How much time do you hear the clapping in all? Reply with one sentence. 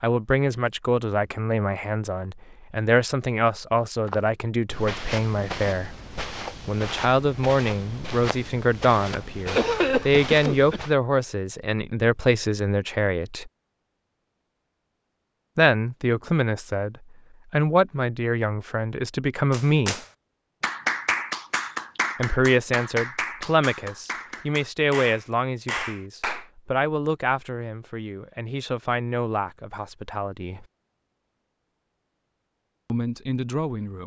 The clapping can be heard for 7 seconds in total.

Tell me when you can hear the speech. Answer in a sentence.
The speech can be heard from 0.0 to 5.9 s, from 6.7 to 13.5 s, from 15.6 to 20.0 s, from 22.1 to 30.6 s and from 32.9 to 34.0 s.